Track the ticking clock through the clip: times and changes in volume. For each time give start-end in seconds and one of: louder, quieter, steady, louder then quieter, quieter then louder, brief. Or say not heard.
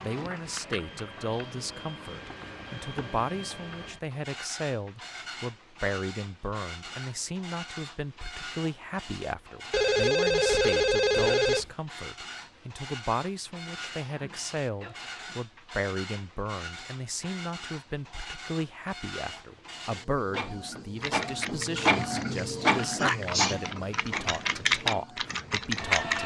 not heard.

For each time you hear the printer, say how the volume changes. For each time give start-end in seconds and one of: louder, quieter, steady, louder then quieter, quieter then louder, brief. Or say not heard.
0.0-26.2 louder.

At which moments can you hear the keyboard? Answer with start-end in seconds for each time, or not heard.
20.9-26.2.